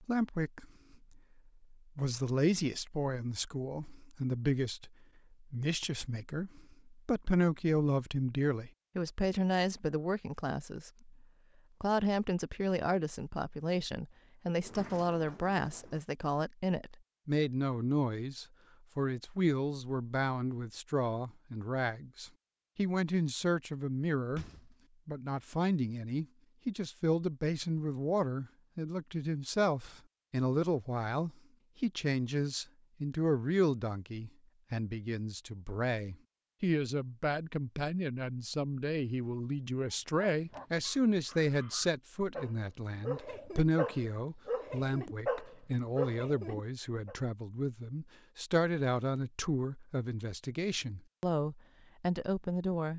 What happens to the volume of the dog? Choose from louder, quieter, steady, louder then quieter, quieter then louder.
louder.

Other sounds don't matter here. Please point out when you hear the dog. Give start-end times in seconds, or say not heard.
39.9-47.1.